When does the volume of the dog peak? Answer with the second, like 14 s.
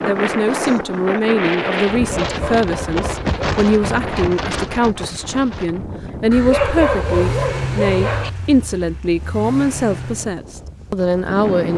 7 s.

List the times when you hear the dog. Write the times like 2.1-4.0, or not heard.
1.9-3.9, 6.3-8.3.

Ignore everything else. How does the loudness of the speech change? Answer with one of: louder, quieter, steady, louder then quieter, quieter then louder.
steady.